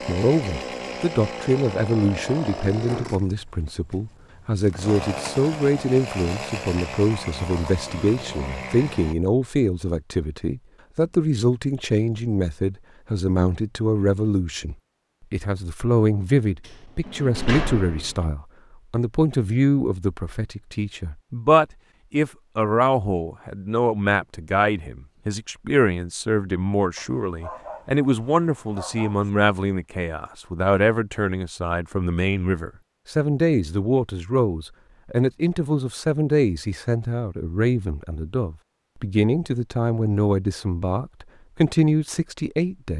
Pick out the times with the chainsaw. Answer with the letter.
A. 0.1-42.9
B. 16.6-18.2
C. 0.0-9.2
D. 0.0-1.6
C.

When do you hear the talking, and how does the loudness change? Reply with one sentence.
You can hear the talking from 0.1 to 42.9 s, at a steady volume.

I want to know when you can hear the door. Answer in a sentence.
You can hear the door from 16.6 to 18.2 s.